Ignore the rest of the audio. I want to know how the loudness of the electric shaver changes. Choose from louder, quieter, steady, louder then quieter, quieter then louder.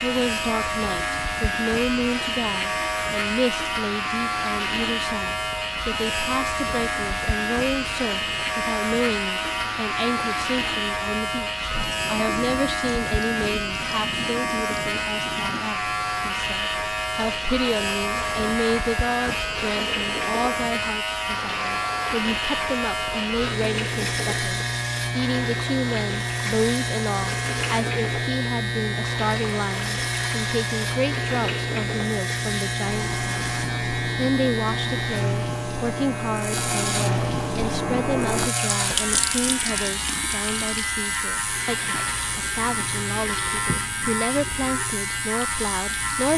steady.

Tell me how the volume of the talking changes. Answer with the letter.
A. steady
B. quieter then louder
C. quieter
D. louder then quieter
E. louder
A.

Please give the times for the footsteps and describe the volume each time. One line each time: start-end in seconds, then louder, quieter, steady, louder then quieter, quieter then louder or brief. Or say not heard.
not heard.